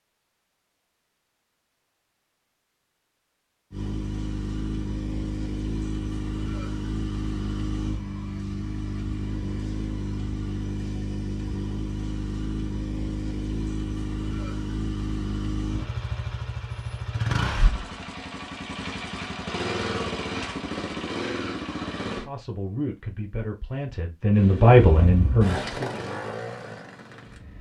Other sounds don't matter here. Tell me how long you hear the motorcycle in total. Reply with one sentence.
The motorcycle can be heard for 22 seconds in total.